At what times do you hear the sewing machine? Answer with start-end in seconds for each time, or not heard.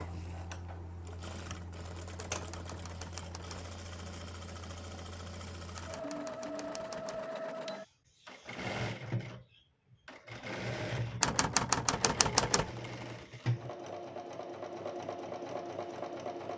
0.0-16.5.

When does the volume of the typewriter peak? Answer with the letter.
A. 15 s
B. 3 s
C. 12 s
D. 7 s
C.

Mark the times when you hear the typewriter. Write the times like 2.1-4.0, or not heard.
2.1-3.7, 5.8-7.2, 11.2-12.8.